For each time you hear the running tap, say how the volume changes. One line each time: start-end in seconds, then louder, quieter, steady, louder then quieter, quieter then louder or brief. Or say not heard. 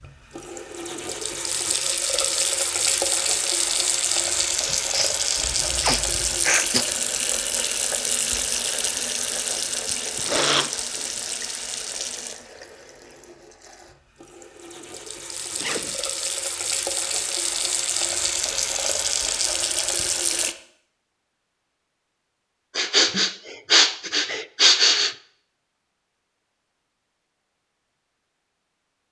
0.0-20.6 quieter then louder.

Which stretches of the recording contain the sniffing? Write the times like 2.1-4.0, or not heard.
4.6-6.8, 10.2-11.1, 22.8-25.1.